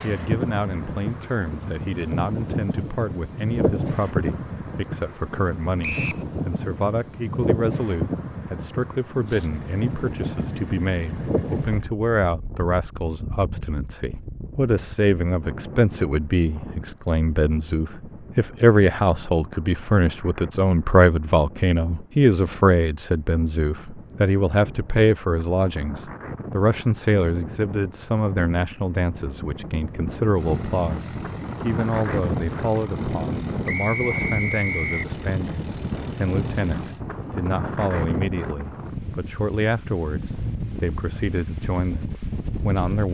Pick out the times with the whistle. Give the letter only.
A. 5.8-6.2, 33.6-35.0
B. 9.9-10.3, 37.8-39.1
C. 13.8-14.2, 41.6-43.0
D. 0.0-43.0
A.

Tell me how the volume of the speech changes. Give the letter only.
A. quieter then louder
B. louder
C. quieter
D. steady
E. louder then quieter
E.